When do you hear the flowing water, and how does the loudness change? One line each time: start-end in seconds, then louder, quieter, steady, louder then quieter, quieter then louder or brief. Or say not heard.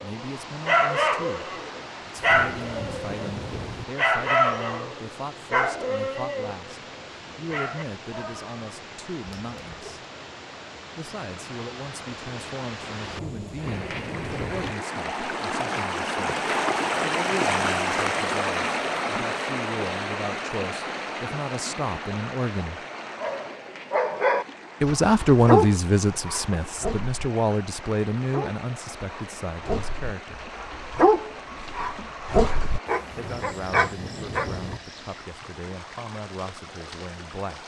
0.0-37.6 louder then quieter.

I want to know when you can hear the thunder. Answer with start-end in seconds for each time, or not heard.
2.1-3.9, 13.0-14.8, 33.1-34.8.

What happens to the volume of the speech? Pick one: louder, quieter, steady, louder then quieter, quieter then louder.
louder then quieter.